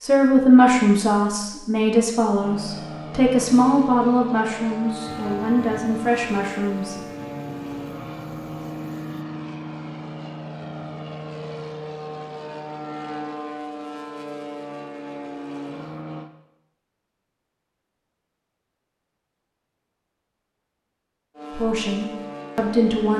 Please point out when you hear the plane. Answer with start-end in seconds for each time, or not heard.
2.4-16.3, 21.4-23.1.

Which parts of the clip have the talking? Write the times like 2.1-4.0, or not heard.
0.0-7.0, 21.5-23.1.